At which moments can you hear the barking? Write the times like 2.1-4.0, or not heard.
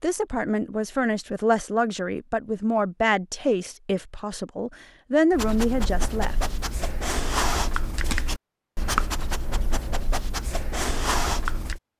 5.3-11.8.